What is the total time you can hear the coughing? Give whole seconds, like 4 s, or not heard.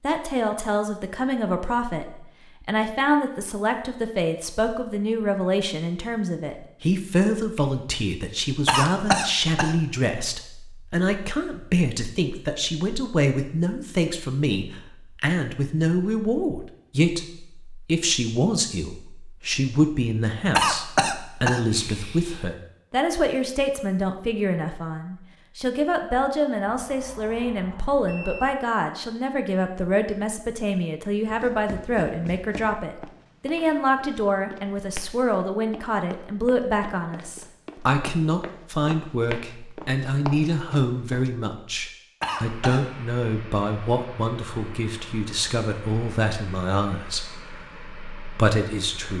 4 s.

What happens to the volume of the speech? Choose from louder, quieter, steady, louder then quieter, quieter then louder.
steady.